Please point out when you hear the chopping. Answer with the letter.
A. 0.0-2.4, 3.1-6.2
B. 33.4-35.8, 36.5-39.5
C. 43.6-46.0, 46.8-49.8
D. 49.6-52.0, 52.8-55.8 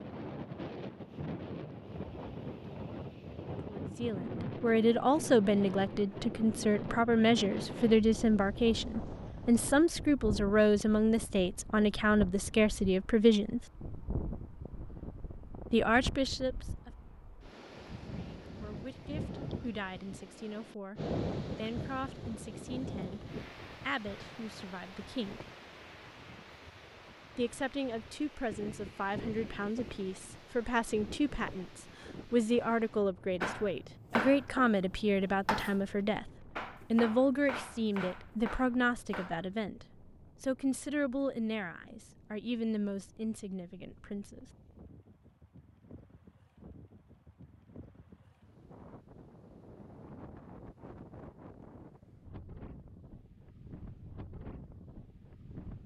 B.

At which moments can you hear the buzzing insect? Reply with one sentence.
The buzzing insect can't be heard in this clip.